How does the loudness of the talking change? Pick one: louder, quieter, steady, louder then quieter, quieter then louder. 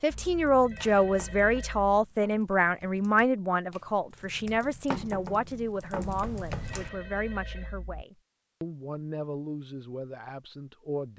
quieter.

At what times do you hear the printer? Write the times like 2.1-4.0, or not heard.
not heard.